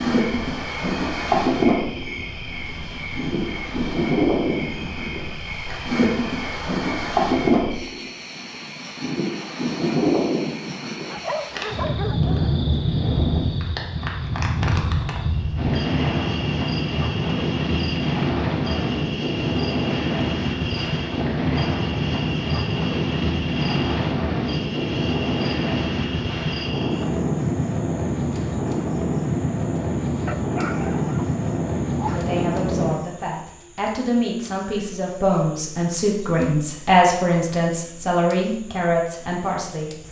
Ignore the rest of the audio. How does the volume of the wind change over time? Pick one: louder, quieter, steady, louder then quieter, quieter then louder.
steady.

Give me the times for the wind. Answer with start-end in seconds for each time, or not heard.
0.0-33.0.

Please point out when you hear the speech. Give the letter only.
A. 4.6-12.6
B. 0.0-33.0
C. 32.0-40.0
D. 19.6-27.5
C.